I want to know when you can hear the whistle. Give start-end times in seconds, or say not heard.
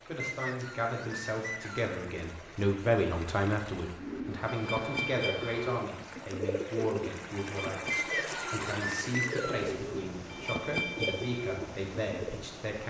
0.1-1.9, 7.9-9.7.